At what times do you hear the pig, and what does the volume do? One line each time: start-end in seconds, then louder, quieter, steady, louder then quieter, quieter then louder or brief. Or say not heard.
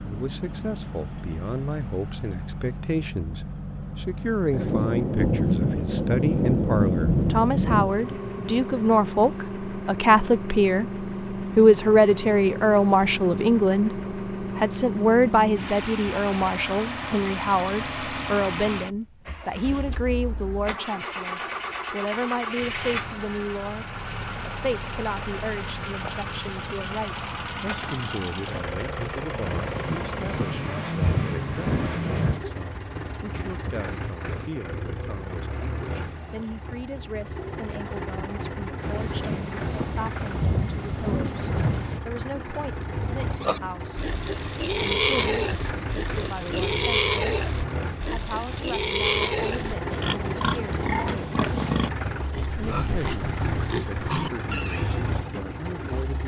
43.1-55.0 steady.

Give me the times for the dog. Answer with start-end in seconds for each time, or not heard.
not heard.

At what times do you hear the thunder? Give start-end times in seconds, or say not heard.
4.5-8.1, 29.4-32.4, 38.8-42.0.